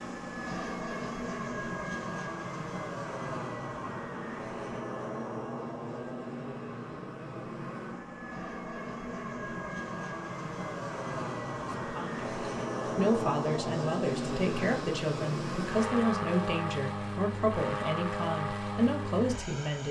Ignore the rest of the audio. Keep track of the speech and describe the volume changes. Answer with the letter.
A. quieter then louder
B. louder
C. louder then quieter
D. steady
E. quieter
D.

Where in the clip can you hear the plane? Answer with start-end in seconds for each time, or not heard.
0.0-19.8.